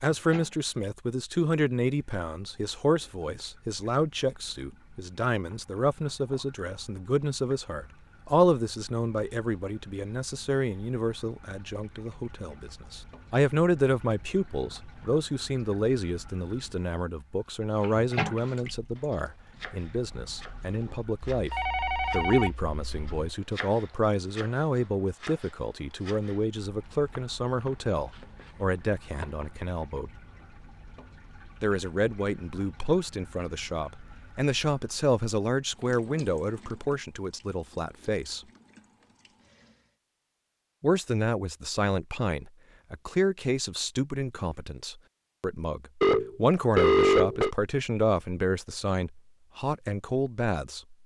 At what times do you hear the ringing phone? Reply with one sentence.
You can hear the ringing phone from 21.3 to 23.1 s and from 46.0 to 47.5 s.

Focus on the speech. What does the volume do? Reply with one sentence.
The loudness of the speech stays about the same.